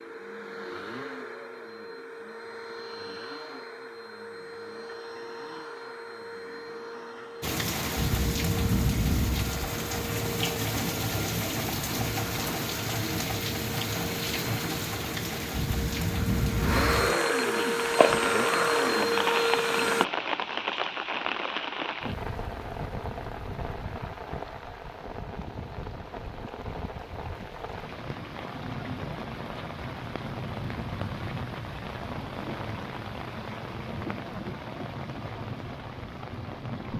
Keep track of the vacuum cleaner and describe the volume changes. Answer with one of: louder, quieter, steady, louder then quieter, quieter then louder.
louder.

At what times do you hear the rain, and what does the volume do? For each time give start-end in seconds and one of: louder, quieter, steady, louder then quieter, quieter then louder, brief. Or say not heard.
7.4-36.9 quieter.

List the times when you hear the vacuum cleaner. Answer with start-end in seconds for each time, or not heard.
0.0-20.1.